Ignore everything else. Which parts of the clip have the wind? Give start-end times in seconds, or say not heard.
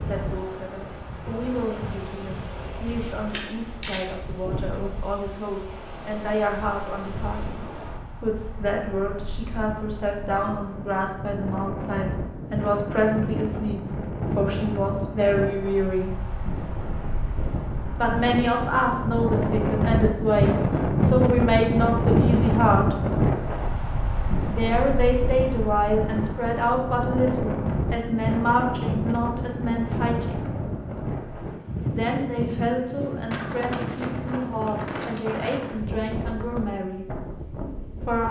0.0-38.2.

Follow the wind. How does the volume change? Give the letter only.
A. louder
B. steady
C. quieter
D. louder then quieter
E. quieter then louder
D.